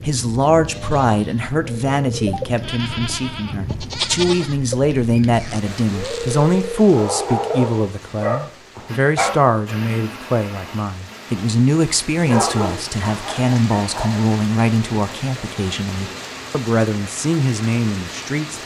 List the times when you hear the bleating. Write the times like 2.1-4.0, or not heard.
0.6-6.8.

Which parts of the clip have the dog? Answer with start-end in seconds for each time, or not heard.
6.8-14.2.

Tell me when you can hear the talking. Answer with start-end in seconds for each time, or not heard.
0.0-18.6.